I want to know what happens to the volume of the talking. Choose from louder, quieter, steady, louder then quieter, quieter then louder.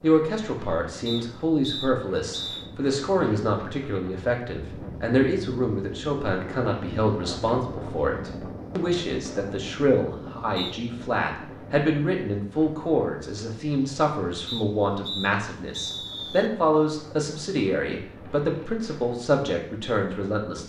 steady.